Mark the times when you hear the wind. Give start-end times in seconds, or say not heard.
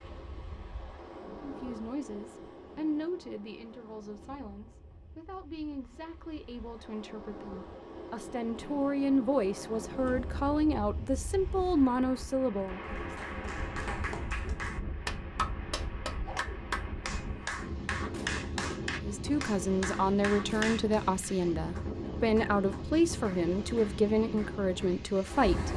0.0-25.7.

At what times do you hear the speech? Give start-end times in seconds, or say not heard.
1.4-12.8, 18.9-25.7.